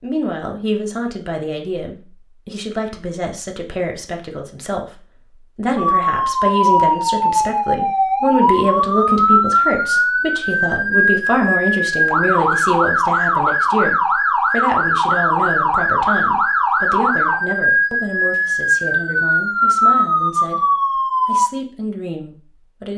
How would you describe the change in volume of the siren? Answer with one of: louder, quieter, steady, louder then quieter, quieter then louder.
steady.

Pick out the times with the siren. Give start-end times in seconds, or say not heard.
5.8-21.5.